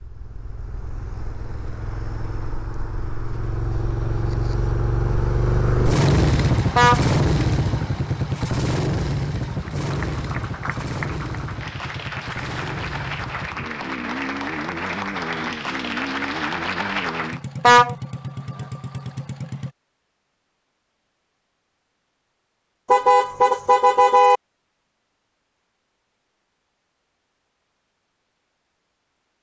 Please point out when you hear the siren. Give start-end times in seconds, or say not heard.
not heard.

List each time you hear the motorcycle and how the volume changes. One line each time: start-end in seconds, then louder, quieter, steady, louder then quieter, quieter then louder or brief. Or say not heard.
0.0-19.8 louder then quieter.